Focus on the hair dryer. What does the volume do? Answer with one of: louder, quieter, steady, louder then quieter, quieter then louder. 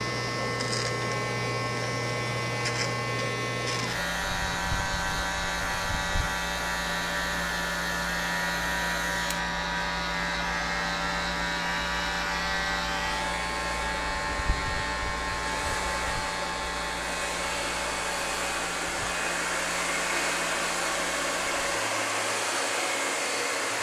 louder.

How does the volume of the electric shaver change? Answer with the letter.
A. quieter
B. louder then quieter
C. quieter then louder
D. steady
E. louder
A.